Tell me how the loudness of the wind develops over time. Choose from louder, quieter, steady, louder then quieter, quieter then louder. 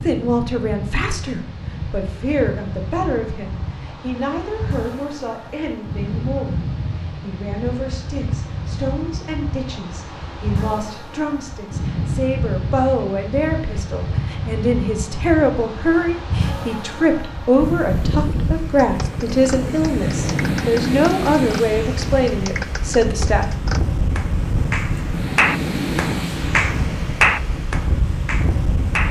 louder.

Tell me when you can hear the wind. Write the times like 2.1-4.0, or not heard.
0.0-29.0.